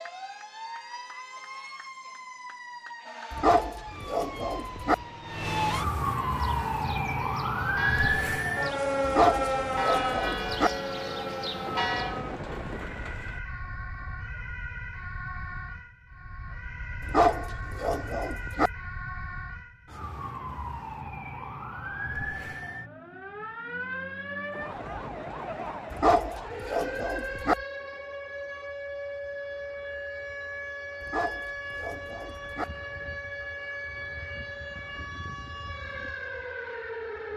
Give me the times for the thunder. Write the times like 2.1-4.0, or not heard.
11.6-13.4, 24.4-26.1.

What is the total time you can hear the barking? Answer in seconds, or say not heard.
9 s.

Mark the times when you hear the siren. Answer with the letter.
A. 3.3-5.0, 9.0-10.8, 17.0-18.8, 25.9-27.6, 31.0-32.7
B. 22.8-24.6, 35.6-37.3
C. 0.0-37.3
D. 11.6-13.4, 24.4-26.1
C.